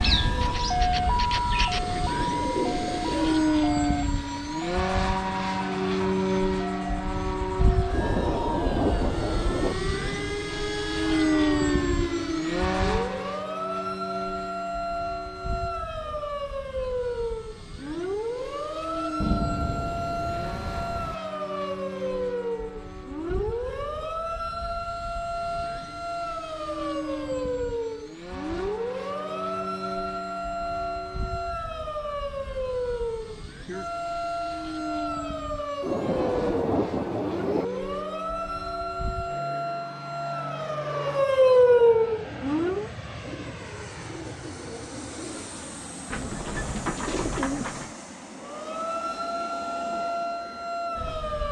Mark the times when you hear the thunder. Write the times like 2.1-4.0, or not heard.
7.9-9.8, 19.2-21.1, 35.8-37.6.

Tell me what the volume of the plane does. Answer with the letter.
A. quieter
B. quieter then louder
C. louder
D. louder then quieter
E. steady
A.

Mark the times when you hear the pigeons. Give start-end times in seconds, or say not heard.
0.0-3.5, 42.1-48.0.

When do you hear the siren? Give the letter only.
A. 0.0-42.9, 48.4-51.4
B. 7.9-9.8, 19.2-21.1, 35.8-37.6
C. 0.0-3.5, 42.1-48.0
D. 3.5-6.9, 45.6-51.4
A.